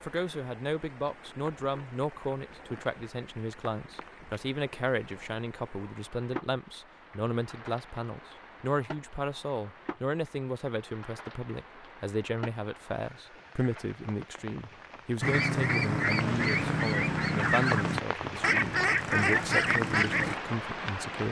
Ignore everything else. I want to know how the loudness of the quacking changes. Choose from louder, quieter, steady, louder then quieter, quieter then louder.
steady.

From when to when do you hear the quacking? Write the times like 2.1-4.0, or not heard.
15.2-20.4.